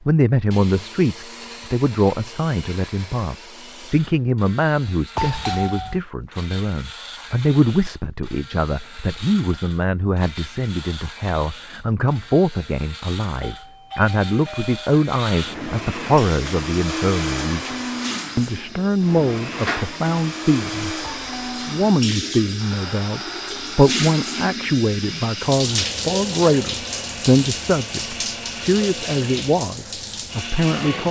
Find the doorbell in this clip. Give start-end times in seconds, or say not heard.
5.2-6.0, 13.4-14.9, 21.0-21.8.